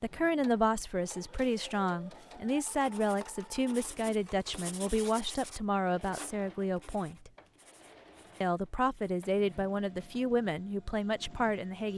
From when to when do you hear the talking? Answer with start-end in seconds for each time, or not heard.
0.0-7.3, 8.4-11.9.